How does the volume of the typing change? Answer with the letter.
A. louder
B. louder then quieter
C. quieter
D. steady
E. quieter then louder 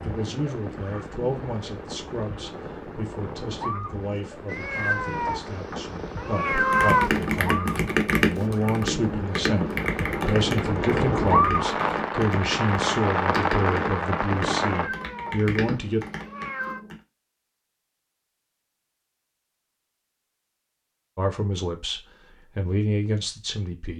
C.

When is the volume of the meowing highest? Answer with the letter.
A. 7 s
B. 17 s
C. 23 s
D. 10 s
A.